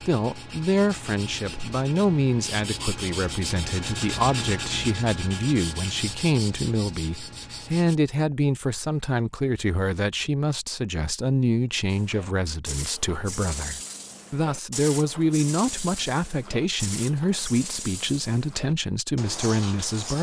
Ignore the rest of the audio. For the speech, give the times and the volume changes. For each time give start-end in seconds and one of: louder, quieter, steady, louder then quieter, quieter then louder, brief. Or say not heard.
0.1-20.1 steady.